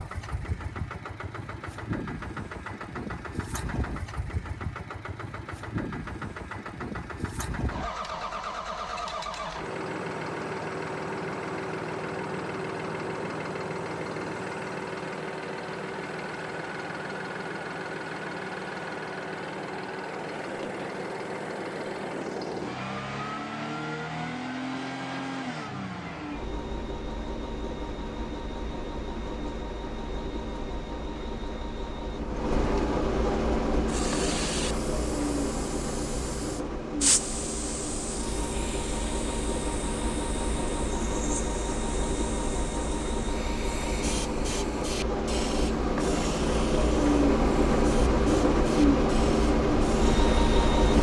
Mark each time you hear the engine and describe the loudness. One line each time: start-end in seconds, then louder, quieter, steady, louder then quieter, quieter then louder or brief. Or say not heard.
0.0-50.9 louder.